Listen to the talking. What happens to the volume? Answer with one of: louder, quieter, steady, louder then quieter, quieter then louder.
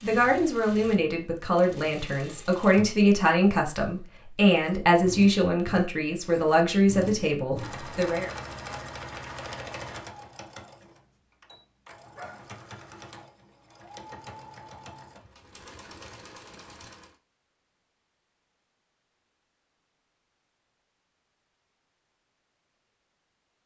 steady.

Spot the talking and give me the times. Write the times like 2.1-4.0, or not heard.
0.0-8.3.